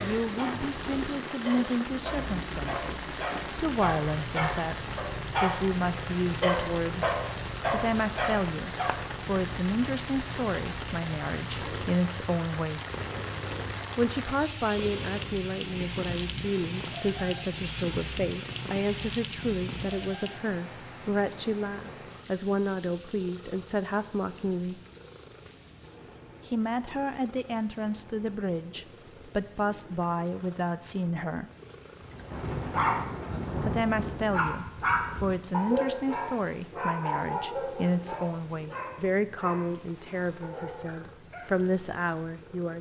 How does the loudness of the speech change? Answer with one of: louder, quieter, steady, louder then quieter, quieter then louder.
steady.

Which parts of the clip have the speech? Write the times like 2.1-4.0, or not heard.
0.0-7.0, 7.7-12.8, 13.9-24.8, 26.4-31.5, 33.5-42.7.